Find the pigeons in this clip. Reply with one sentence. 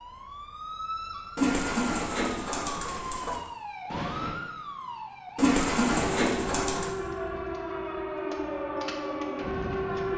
You can hear the pigeons from 1.4 to 3.4 s and from 5.3 to 6.9 s.